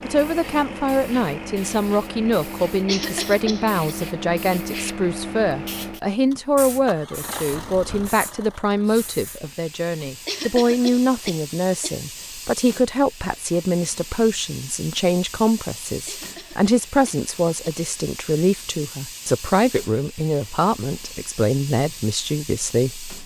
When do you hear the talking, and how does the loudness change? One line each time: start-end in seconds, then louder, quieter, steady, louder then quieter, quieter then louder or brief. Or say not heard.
0.0-23.1 steady.